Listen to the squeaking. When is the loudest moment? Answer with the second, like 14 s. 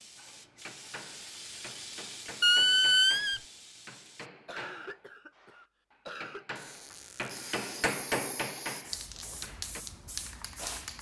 3 s.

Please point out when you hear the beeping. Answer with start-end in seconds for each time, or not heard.
not heard.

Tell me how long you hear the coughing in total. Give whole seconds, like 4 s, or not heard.
2 s.